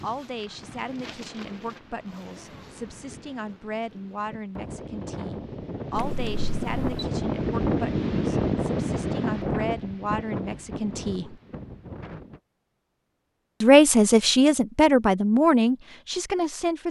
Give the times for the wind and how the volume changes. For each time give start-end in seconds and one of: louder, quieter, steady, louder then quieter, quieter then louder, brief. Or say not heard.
0.0-12.4 louder then quieter.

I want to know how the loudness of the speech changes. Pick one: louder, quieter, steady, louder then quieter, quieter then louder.
louder.